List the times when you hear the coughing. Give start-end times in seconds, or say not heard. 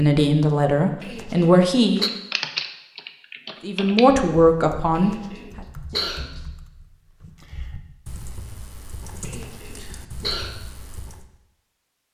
1.0-2.1, 5.0-6.4, 9.2-10.5.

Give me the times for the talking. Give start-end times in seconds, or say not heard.
0.0-2.0, 3.6-5.1.